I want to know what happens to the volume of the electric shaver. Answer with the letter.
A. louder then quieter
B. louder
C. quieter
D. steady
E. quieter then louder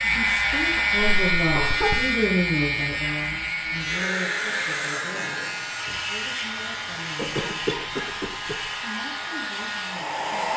C.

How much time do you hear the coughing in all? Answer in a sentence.
The coughing can be heard for 3 seconds in total.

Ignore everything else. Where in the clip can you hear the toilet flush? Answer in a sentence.
You can't hear the toilet flush here.